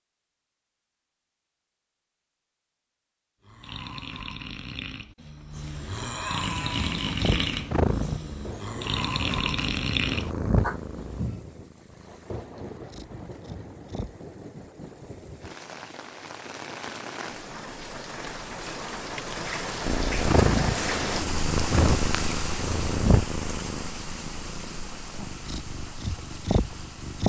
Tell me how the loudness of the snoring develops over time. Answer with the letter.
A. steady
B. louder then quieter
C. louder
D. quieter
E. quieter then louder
C.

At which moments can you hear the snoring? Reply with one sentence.
You can hear the snoring from 3.4 to 11.4 s.